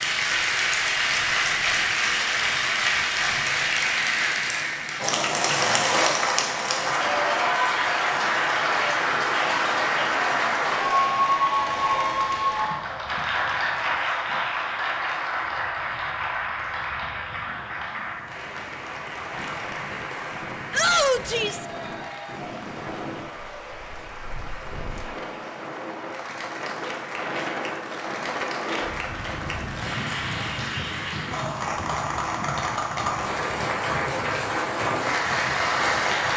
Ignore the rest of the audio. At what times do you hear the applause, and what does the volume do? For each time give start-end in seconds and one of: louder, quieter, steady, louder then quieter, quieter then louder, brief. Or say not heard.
0.0-36.3 quieter then louder.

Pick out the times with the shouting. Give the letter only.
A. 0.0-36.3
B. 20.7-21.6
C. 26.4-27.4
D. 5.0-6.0
B.